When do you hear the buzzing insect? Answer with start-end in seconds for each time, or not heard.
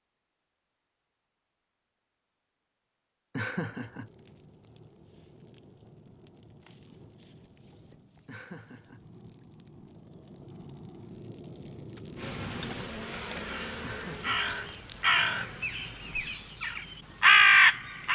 12.2-15.8.